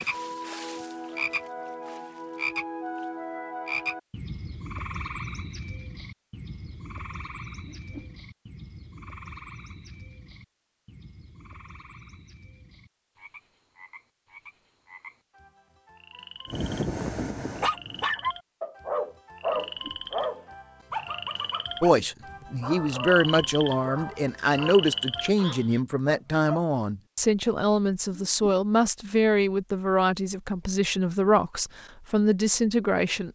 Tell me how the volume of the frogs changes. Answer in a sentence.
The loudness of the frogs goes down, then up.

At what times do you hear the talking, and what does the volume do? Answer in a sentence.
You can hear the talking from 21.8 to 33.3 s, at a steady volume.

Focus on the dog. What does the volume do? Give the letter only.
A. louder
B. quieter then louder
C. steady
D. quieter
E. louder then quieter
D.